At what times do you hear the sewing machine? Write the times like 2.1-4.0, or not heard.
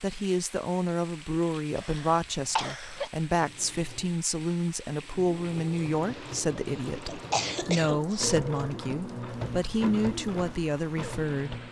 3.4-11.6.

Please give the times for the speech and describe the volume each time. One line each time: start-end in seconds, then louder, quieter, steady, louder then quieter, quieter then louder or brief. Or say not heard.
0.0-11.6 steady.